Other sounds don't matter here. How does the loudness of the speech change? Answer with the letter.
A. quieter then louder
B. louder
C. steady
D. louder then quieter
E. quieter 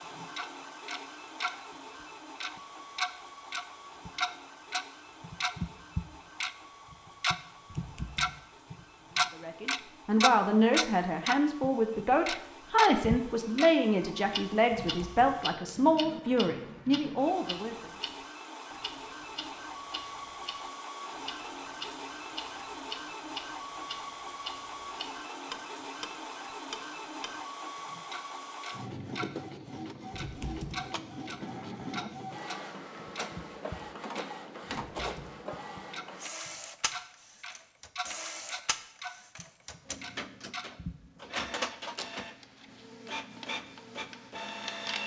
C.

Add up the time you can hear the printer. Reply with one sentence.
The printer can be heard for 45 seconds in total.